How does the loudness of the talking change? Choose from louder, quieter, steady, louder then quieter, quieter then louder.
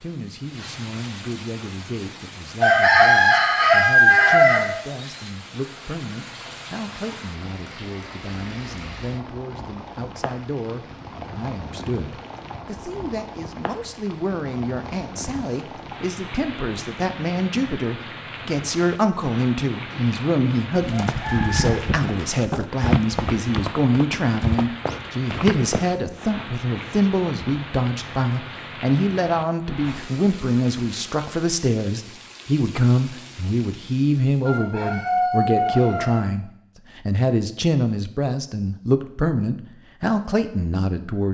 louder.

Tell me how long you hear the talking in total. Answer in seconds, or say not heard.
41 s.